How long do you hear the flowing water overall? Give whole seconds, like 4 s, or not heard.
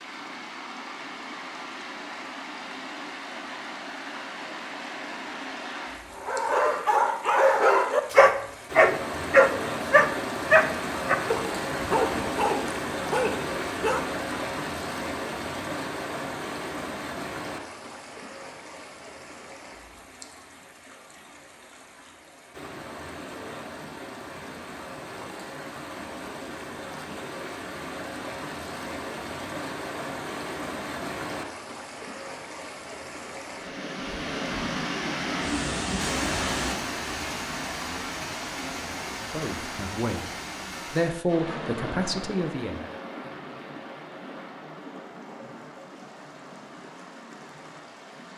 48 s.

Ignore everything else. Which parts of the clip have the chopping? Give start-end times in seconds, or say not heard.
not heard.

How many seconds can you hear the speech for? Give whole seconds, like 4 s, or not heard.
3 s.